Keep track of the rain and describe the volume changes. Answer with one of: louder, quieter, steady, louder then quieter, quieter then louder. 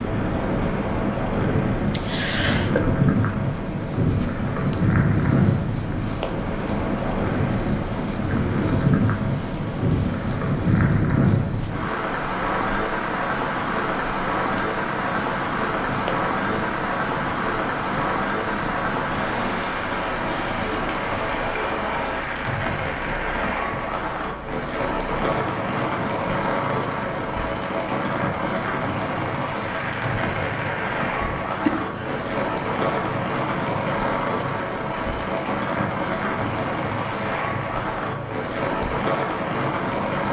steady.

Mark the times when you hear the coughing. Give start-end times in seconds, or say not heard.
1.9-2.9, 31.6-32.3.